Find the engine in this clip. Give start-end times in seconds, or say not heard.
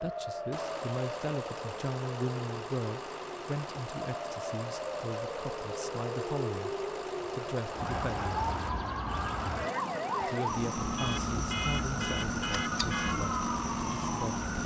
0.0-14.6.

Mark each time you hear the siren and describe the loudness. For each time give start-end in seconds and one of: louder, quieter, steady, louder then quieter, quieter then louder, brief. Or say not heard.
0.0-14.6 louder.